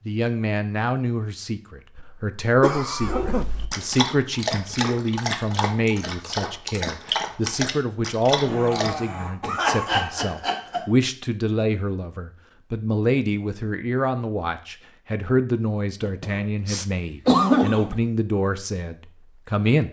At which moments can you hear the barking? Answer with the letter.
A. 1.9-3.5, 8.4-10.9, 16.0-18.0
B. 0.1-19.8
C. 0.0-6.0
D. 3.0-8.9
D.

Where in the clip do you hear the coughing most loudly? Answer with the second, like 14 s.
17 s.